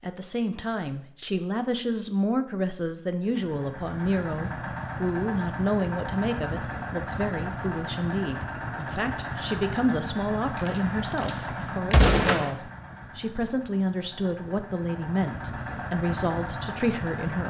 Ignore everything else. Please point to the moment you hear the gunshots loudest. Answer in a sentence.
The loudest moment of the gunshots is at 12 seconds.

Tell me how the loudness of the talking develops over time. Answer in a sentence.
The loudness of the talking stays about the same.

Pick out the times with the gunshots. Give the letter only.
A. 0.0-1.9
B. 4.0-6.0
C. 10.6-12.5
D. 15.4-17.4
C.